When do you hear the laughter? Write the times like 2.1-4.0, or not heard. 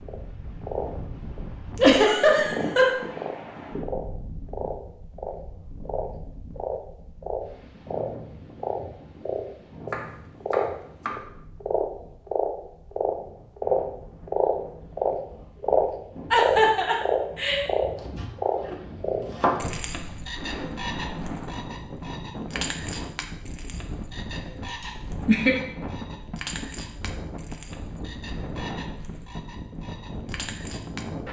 1.8-2.9, 16.3-17.6, 24.6-25.6.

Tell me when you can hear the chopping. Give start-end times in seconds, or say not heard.
9.9-11.2, 17.9-19.6.